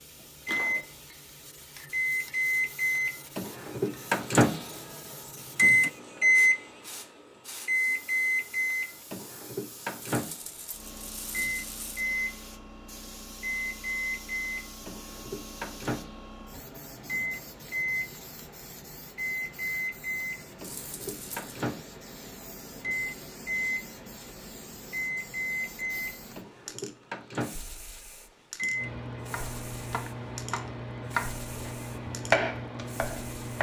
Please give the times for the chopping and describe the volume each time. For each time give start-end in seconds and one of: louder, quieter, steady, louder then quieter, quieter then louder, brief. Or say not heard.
29.3-33.5 louder then quieter.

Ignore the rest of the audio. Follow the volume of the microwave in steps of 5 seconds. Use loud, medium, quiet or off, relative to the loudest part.
loud, loud, medium, medium, medium, medium, quiet.